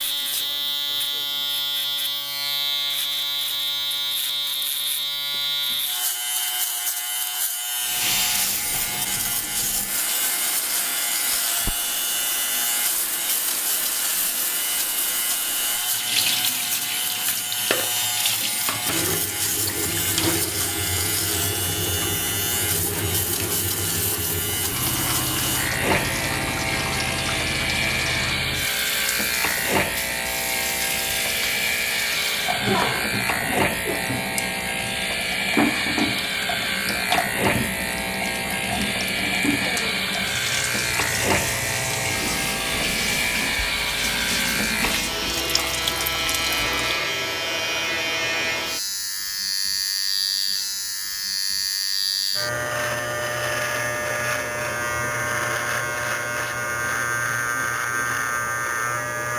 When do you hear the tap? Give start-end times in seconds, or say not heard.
7.8-47.0.